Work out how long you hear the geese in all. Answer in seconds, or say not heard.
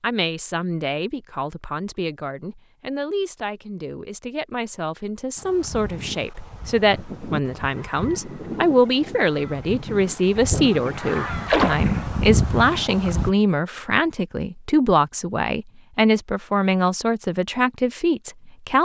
8 s.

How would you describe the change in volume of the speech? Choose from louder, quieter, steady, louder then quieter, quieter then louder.
louder.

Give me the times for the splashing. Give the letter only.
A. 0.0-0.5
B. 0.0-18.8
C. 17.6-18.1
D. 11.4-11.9
D.